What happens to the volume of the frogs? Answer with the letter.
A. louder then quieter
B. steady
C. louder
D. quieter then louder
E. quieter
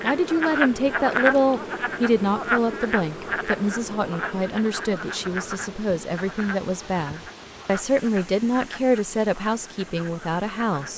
E.